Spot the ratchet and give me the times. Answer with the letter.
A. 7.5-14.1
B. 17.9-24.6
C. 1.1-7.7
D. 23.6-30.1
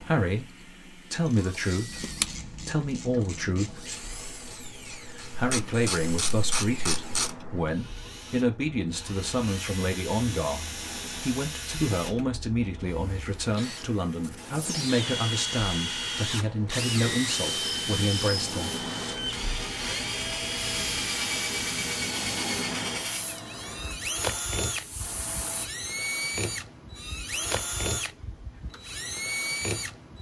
C.